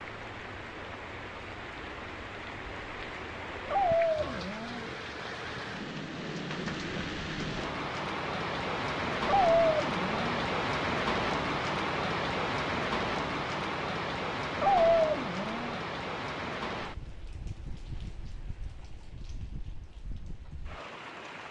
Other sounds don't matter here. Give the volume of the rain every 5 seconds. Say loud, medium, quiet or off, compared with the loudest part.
medium, loud, loud, medium, quiet.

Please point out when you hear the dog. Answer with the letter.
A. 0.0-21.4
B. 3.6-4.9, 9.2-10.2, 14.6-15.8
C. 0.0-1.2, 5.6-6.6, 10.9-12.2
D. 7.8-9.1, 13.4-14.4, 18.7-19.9
B.